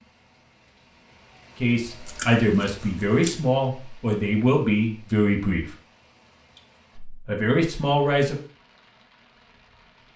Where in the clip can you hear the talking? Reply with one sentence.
The talking can be heard from 1.6 to 5.7 s and from 7.0 to 8.3 s.